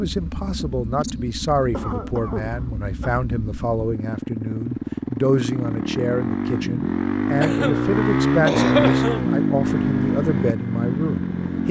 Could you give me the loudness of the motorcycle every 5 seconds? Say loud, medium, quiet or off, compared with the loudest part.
medium, loud, loud.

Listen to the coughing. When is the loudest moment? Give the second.
9 s.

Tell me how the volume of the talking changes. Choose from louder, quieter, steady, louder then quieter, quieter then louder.
steady.